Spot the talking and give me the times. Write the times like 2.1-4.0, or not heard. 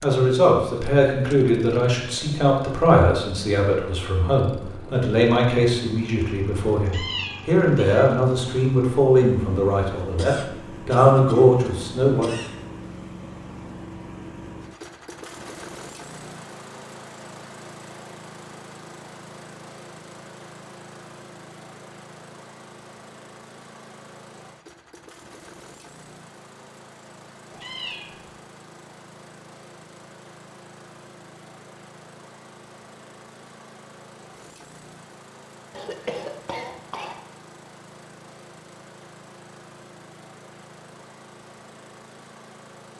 0.0-12.3.